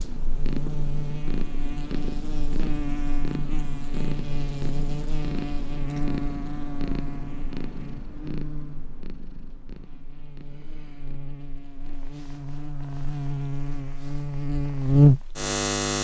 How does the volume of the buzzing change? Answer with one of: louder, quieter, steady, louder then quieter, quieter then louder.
quieter then louder.